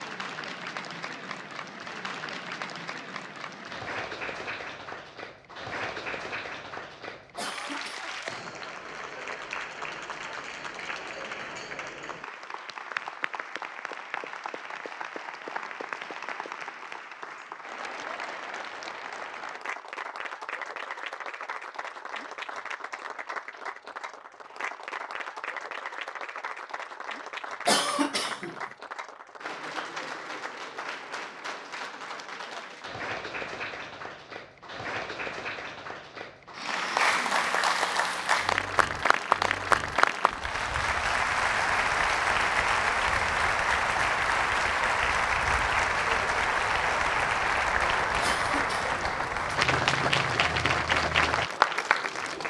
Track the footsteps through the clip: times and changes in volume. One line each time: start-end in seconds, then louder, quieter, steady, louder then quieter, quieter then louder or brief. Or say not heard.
not heard.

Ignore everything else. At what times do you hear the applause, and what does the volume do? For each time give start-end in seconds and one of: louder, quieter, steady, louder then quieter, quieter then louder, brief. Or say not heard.
0.0-52.4 louder.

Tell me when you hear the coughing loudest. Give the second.
28 s.